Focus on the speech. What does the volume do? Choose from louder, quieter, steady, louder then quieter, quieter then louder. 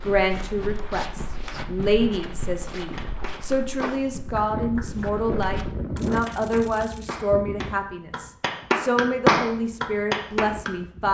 steady.